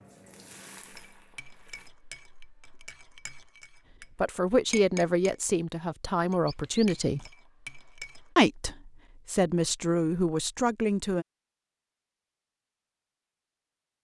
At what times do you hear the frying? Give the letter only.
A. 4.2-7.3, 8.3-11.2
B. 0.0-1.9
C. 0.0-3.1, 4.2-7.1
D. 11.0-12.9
B.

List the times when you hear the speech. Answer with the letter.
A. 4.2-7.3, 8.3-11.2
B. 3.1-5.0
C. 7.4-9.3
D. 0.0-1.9
A.